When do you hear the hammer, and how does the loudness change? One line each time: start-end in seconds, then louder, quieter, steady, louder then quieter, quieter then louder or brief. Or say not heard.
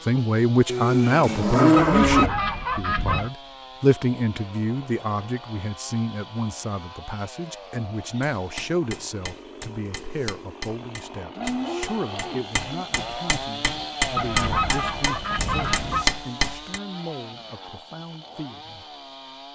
8.2-16.8 louder.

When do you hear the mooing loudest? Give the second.
2 s.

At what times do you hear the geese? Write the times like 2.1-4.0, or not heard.
1.8-3.3, 14.2-16.1.